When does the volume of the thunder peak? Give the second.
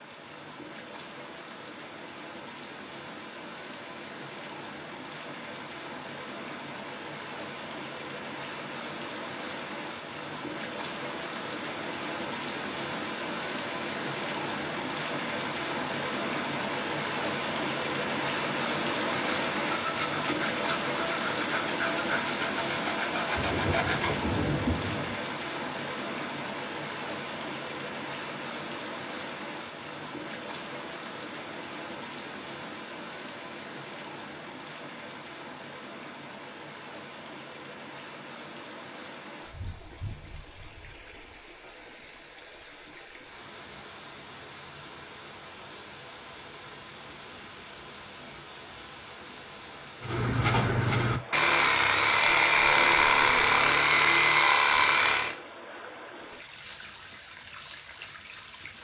25 s.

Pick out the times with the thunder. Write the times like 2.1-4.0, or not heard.
23.3-25.1.